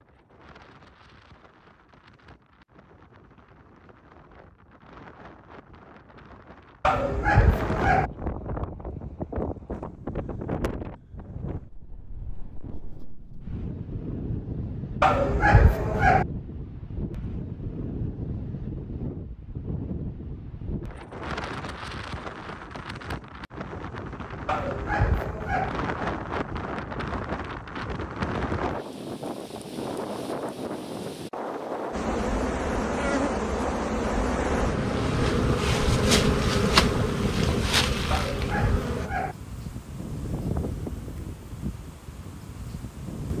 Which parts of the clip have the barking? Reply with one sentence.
You can hear the barking from 6.8 to 8.1 s, from 15.0 to 16.2 s, from 24.4 to 25.7 s and from 38.1 to 39.4 s.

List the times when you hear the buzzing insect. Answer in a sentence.
The buzzing insect can be heard from 31.9 to 39.1 s.